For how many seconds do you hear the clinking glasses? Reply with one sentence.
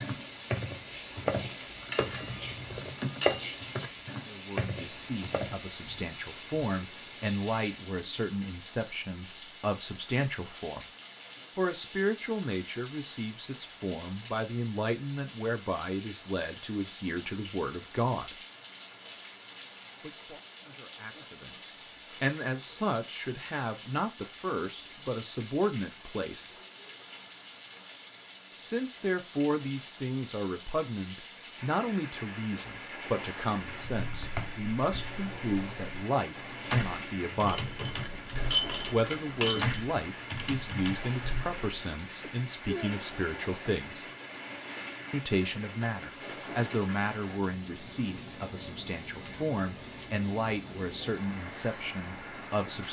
The clinking glasses can be heard for 5 seconds in total.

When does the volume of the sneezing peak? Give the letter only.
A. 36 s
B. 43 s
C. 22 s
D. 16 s
B.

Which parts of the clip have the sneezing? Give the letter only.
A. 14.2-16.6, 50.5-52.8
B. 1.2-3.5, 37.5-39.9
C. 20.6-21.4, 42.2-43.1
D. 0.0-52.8
C.